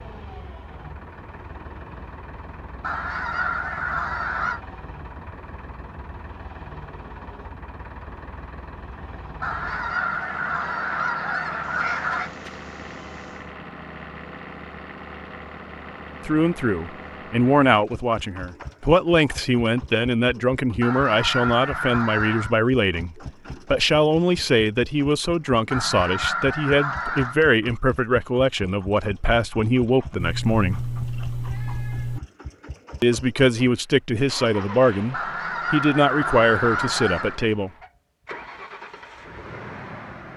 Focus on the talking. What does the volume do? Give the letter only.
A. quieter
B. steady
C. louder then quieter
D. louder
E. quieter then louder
B.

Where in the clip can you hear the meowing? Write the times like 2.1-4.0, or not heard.
11.6-13.5, 30.1-32.2.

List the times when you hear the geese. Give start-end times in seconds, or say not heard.
2.8-4.6, 9.4-12.3, 20.8-22.6, 25.7-27.4, 35.1-37.4.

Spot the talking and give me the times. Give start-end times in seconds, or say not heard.
16.2-30.8, 33.0-37.7.